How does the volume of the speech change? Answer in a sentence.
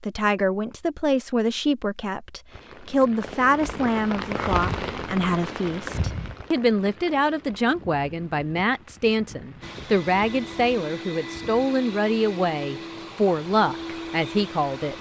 The volume of the speech stays about the same.